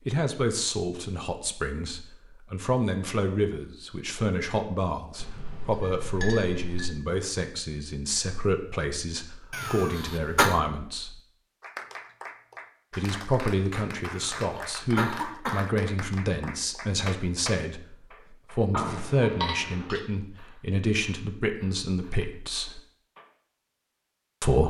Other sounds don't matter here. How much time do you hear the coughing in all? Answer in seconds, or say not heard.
3 s.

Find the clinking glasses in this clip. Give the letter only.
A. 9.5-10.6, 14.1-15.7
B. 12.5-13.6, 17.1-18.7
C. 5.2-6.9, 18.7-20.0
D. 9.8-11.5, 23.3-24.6
C.